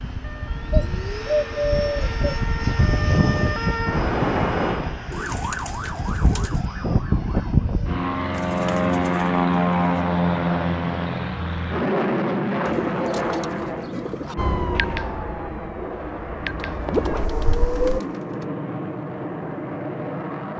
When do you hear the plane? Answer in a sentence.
The plane can be heard from 0.0 to 20.5 s.